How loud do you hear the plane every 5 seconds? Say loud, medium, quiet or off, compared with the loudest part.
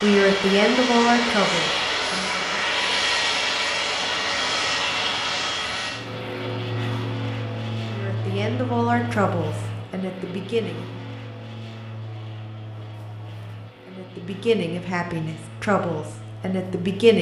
loud, medium, quiet, quiet.